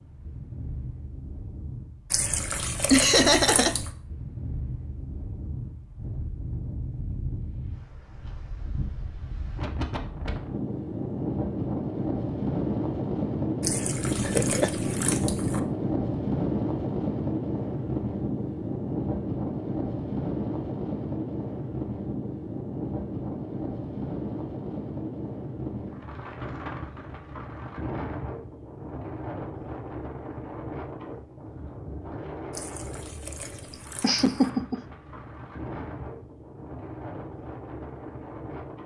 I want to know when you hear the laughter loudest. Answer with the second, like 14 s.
3 s.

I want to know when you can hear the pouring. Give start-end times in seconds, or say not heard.
2.1-3.9, 13.6-15.6, 32.5-34.2.